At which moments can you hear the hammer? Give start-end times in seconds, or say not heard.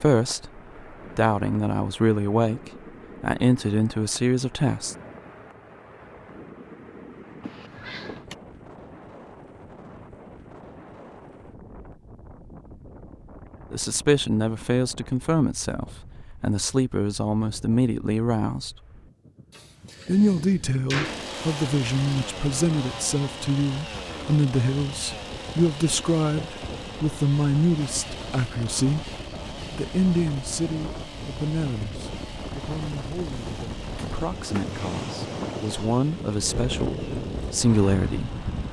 not heard.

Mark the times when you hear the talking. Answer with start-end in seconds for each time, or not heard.
0.0-5.0, 13.7-18.8, 20.1-29.1, 29.7-38.3.